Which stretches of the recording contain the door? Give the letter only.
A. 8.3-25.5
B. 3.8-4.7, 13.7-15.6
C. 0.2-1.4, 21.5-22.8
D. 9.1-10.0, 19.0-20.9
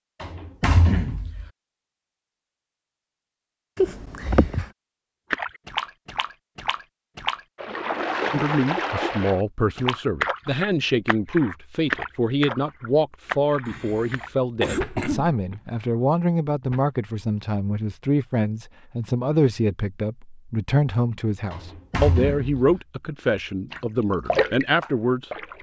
C.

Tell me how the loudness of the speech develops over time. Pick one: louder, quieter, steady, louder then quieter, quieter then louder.
steady.